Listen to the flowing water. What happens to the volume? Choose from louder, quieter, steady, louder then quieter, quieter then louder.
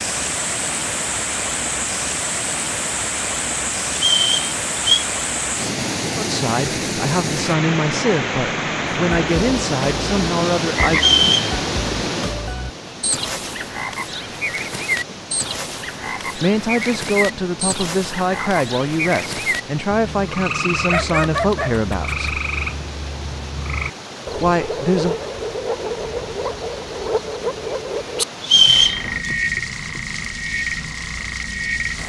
quieter.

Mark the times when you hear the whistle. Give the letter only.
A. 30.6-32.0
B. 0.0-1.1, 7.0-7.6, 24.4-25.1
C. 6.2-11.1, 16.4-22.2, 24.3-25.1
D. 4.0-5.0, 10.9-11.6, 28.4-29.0
D.